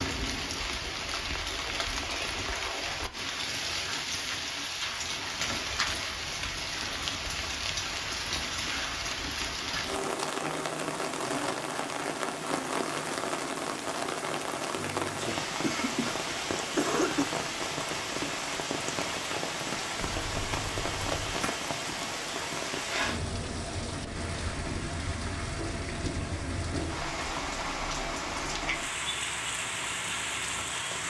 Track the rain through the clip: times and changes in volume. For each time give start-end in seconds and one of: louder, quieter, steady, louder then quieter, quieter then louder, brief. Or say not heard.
0.0-31.0 steady.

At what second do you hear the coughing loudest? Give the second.
17 s.